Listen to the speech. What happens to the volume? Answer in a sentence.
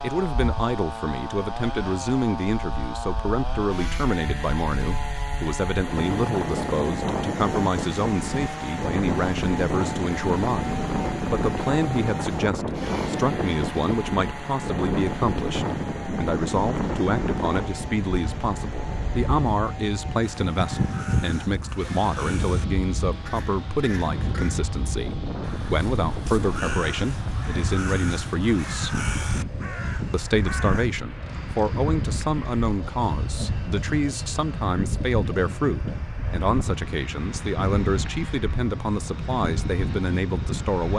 The volume of the speech stays about the same.